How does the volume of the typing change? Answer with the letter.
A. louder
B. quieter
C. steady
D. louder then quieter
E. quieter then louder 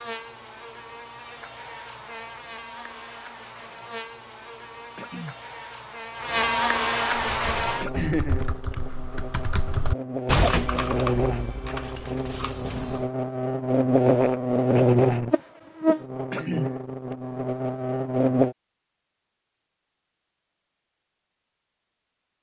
D.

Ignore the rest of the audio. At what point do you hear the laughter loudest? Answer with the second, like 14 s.
8 s.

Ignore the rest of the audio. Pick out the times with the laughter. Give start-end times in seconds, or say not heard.
8.0-8.8, 16.3-17.1.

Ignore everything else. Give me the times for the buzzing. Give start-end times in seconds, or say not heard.
0.0-18.6.